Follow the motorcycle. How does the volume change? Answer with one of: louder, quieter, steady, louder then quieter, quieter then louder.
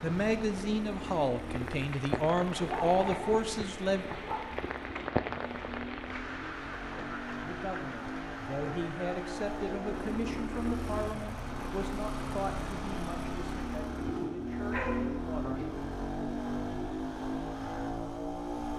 louder.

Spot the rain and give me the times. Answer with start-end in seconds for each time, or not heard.
0.0-13.8.